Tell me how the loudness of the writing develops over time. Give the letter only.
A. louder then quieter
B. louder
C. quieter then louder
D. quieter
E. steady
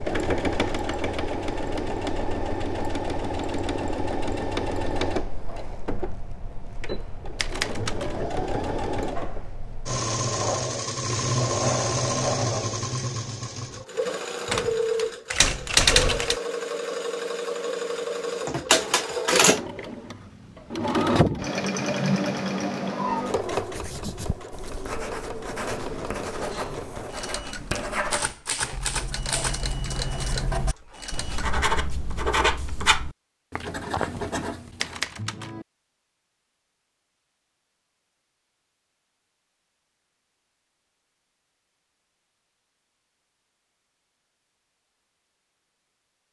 B.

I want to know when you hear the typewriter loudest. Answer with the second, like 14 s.
16 s.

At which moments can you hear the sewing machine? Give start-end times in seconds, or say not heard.
0.0-31.6.